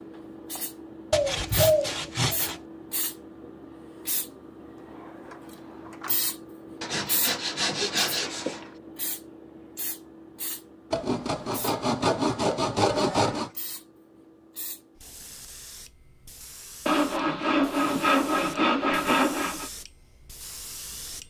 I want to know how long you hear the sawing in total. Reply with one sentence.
You can hear the sawing for 9 seconds altogether.